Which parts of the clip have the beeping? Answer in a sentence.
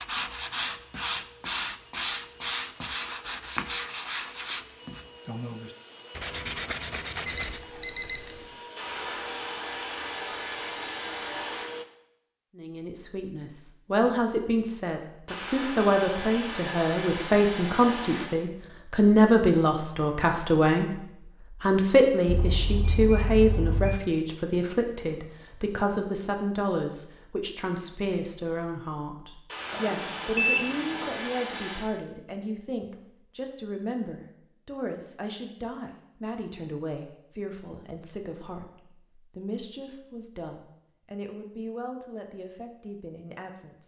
You can hear the beeping from 7.2 to 8.4 s, from 22.2 to 24.0 s and from 29.7 to 31.1 s.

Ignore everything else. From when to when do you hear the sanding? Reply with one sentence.
You can hear the sanding from 0.0 to 7.6 s.